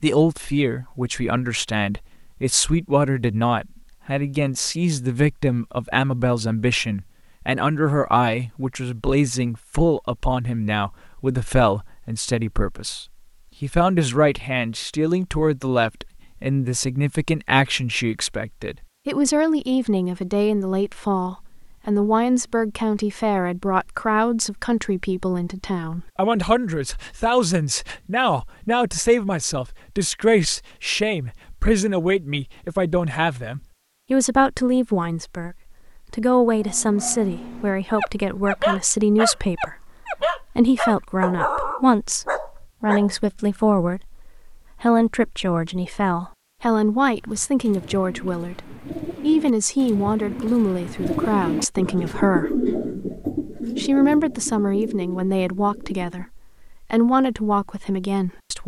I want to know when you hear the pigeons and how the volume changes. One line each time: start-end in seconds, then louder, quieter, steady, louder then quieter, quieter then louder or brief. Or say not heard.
47.1-56.3 louder then quieter.